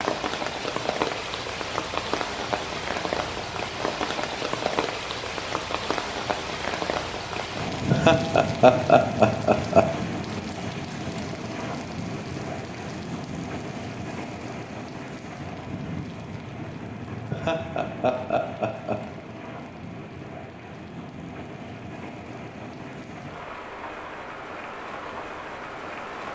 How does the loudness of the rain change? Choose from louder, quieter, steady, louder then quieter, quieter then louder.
quieter.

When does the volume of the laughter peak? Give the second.
9 s.